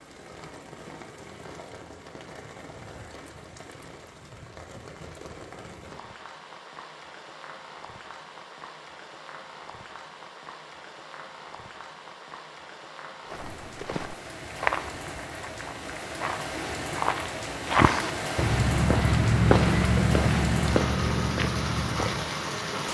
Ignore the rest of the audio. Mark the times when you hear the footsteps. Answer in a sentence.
You can hear the footsteps from 13.2 to 22.4 s.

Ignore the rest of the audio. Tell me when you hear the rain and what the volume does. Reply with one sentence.
You can hear the rain from 0.0 to 22.8 s, getting louder.